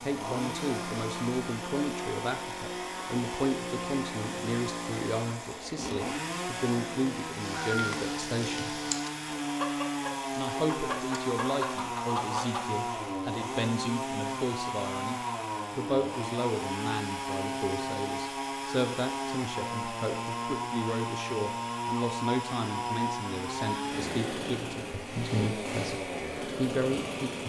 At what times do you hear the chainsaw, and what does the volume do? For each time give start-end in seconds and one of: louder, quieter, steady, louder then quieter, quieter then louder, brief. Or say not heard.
0.0-27.4 steady.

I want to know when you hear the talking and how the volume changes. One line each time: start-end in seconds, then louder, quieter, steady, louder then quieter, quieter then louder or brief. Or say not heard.
0.0-8.8 steady
10.3-27.4 steady.